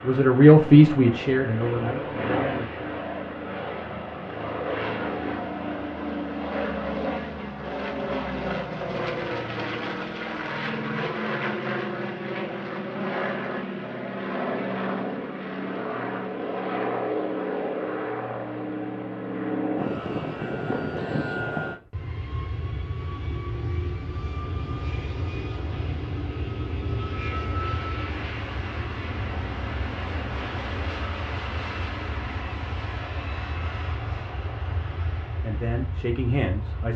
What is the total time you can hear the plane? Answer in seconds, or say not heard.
37 s.